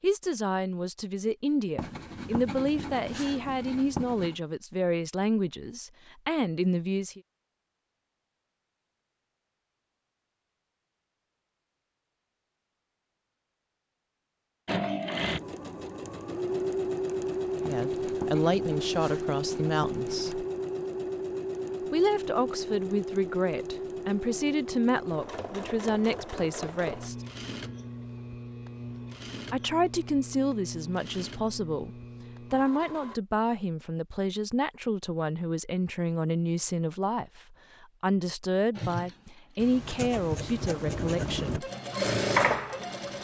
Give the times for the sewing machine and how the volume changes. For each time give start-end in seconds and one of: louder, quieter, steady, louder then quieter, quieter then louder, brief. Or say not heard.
14.7-33.2 quieter
38.7-43.1 louder.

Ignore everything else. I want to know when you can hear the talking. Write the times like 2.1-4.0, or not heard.
0.0-7.2, 17.6-20.4, 21.9-27.1, 29.5-31.9, 32.5-41.7.